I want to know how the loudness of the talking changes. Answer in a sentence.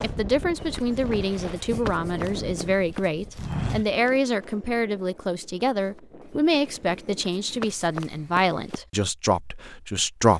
The loudness of the talking stays about the same.